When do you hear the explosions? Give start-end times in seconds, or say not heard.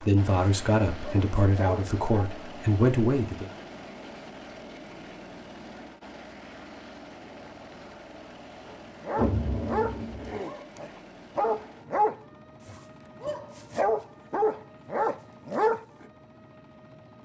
9.2-10.3.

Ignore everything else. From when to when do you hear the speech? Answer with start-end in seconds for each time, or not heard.
0.0-3.5.